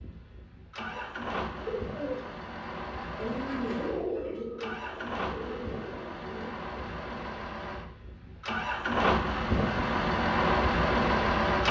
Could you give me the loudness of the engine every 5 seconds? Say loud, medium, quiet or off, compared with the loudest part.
quiet, medium, loud.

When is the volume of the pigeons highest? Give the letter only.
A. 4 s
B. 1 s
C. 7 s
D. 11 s
A.